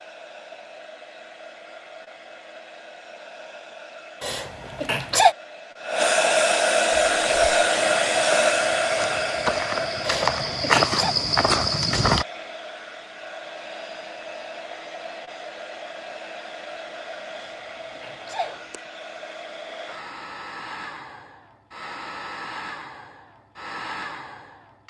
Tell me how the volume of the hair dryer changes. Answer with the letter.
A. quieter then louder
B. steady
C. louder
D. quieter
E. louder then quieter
E.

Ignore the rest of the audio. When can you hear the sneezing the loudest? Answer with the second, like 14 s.
5 s.